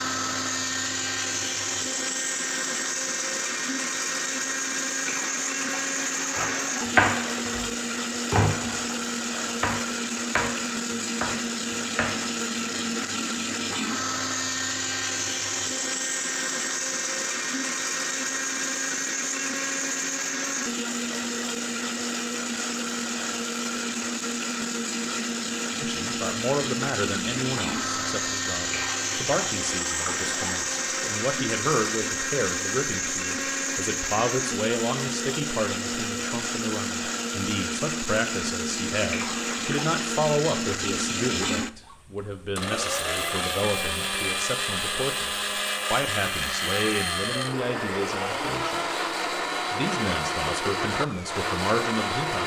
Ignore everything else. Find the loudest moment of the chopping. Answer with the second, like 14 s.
7 s.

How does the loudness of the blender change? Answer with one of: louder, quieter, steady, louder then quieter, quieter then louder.
steady.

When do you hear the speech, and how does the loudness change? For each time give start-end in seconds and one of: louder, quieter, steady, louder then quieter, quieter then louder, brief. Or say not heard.
25.8-49.0 steady
49.7-52.4 brief.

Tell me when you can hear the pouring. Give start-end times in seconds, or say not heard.
5.0-7.7, 28.7-31.1, 39.1-40.0.